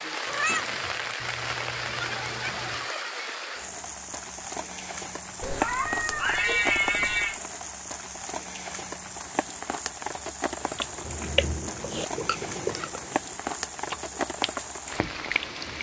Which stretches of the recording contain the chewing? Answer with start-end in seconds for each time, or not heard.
10.7-15.7.